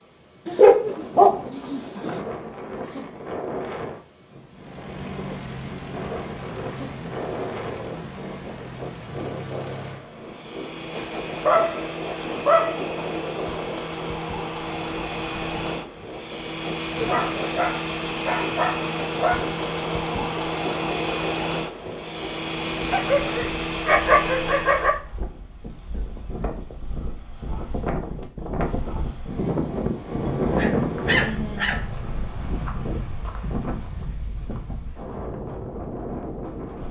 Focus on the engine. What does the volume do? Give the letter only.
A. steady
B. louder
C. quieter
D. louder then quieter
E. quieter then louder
B.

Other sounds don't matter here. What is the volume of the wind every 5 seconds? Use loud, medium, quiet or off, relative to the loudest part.
medium, medium, medium, medium, medium, loud, loud, medium.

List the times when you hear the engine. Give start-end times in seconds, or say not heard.
4.5-25.0.